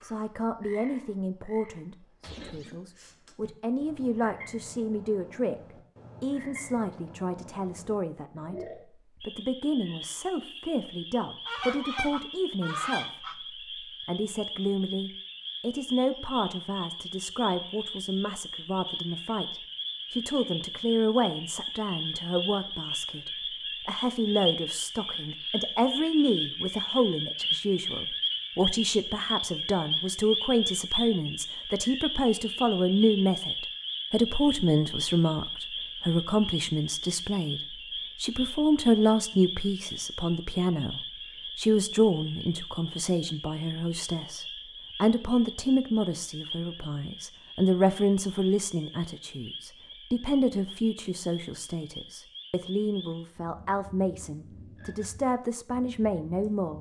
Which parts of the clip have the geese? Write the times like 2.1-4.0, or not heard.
11.4-13.3.